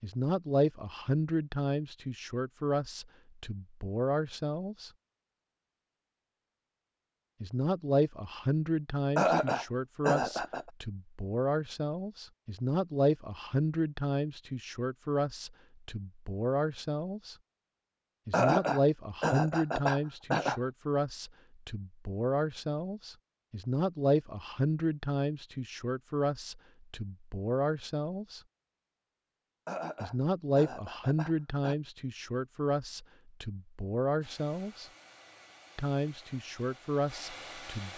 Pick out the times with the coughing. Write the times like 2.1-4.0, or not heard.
9.2-10.7, 18.3-20.6, 29.6-31.8.